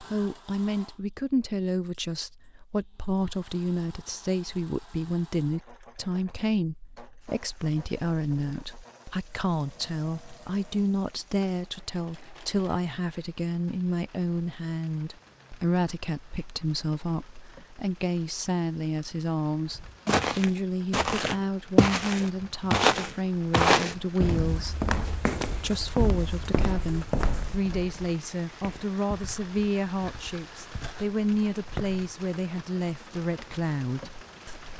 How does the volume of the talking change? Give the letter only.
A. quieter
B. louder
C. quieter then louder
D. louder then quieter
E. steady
E.